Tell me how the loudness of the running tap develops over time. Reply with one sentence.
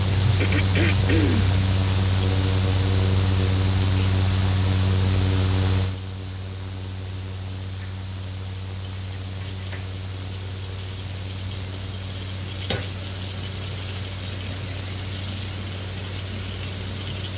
The loudness of the running tap goes down, then up.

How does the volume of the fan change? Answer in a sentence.
The loudness of the fan goes down.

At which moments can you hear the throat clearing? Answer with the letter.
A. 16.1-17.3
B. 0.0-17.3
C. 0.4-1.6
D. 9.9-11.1
C.